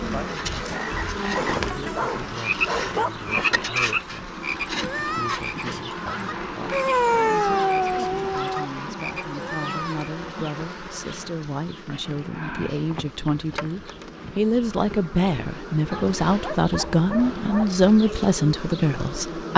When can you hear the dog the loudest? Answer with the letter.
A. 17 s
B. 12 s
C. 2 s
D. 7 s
D.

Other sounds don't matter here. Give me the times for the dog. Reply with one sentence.
You can hear the dog from 1.4 to 3.1 s, from 6.7 to 8.7 s and from 15.9 to 17.8 s.